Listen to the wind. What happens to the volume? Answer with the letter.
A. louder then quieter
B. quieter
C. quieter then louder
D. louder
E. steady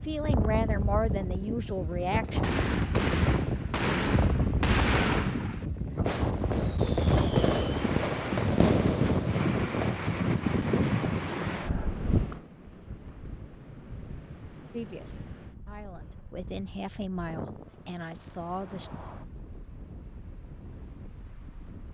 B.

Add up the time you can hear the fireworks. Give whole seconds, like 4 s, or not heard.
8 s.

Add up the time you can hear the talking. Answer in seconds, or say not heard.
7 s.